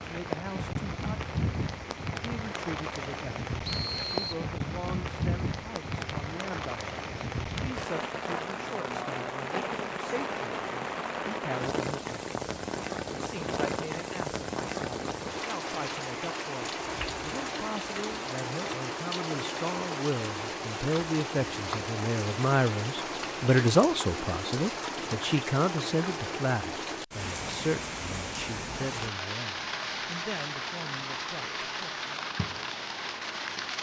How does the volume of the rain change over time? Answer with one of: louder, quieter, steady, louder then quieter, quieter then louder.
steady.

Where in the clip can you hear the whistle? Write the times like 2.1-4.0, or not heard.
3.6-4.5.